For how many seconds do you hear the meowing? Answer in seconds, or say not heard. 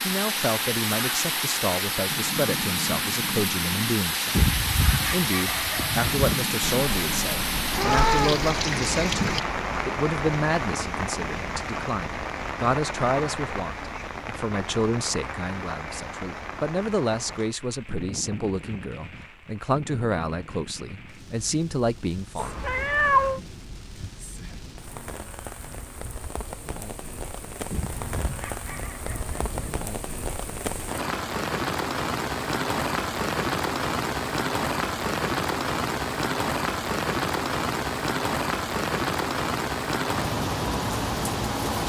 3 s.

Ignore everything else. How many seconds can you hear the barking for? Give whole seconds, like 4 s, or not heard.
4 s.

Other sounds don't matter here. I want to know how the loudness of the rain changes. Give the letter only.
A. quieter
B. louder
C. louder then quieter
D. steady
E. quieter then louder
E.